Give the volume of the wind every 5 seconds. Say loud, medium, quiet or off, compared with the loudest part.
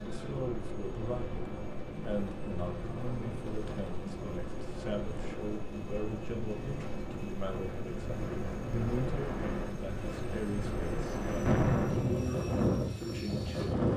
medium, medium, loud.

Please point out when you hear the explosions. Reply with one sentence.
You can hear the explosions from 11.4 to 12.3 s.